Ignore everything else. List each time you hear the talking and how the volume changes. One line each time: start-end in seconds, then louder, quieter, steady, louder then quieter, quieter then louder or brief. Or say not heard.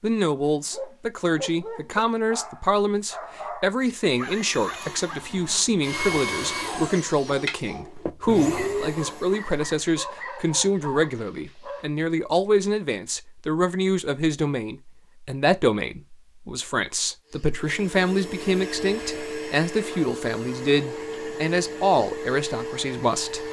0.0-23.4 steady.